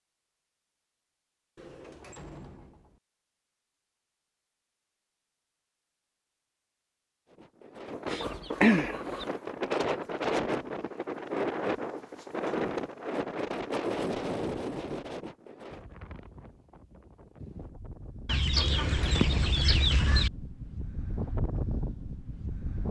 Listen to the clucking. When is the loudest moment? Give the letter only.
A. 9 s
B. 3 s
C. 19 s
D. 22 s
A.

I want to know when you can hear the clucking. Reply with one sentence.
You can hear the clucking from 8.1 to 9.2 s and from 18.2 to 20.3 s.